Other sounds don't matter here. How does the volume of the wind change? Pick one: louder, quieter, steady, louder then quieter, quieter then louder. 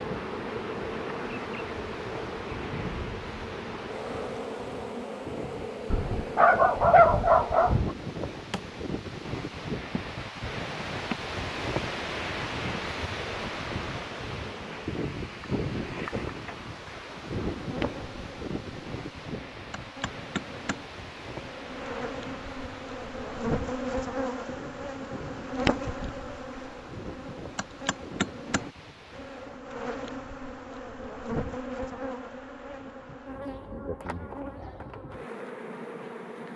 louder then quieter.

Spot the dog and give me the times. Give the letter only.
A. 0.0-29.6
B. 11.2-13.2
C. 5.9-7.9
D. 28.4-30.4
C.